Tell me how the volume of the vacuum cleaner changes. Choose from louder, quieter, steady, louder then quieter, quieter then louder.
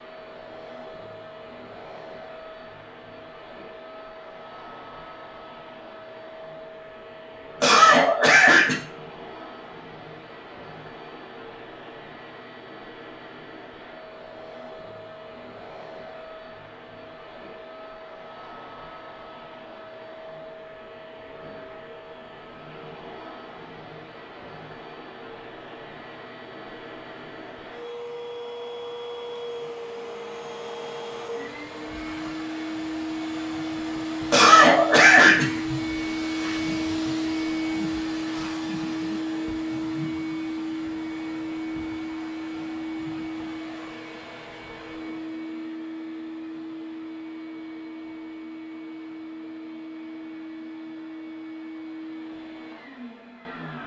louder then quieter.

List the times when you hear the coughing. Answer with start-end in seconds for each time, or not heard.
7.6-8.8, 34.3-35.6.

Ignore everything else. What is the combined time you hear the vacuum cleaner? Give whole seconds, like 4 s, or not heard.
54 s.